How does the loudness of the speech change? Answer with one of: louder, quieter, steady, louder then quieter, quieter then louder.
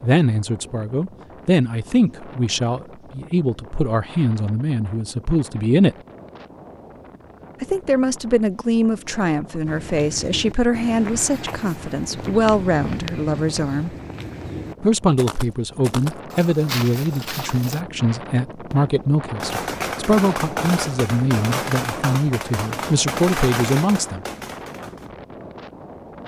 steady.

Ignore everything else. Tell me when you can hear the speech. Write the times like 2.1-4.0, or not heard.
0.0-6.0, 7.6-13.9, 14.8-24.2.